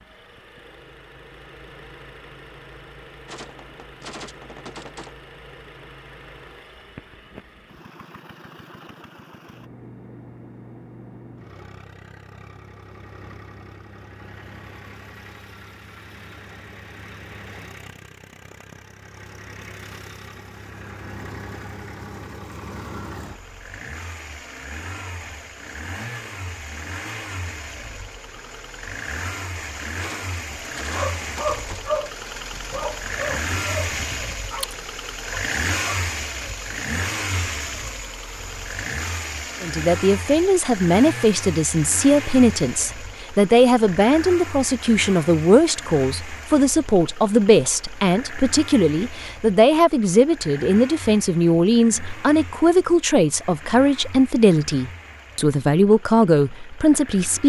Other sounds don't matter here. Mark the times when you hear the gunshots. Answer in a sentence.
You can hear the gunshots from 3.2 to 5.2 s and from 30.0 to 31.9 s.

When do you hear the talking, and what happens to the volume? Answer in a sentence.
The talking can be heard from 39.6 to 57.4 s, at a steady volume.